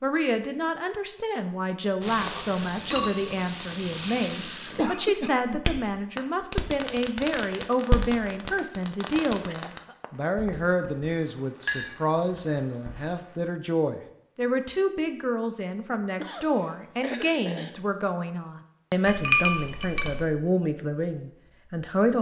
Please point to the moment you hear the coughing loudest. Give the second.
5 s.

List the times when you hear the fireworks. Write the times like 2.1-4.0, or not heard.
2.0-13.4.